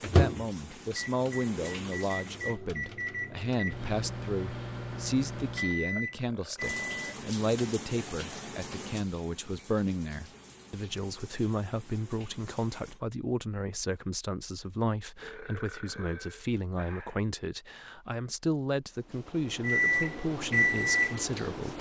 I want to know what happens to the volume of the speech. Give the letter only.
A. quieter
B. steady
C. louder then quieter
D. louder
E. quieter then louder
B.